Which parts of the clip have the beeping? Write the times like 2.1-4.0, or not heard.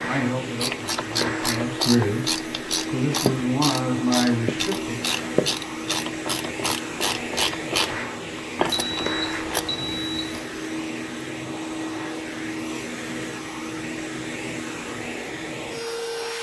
8.7-10.4.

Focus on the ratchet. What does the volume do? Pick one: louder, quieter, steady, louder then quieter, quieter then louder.
steady.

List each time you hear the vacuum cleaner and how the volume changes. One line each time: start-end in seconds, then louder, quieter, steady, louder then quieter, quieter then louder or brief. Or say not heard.
0.0-16.3 steady.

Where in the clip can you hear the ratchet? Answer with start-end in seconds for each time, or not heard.
0.6-9.7.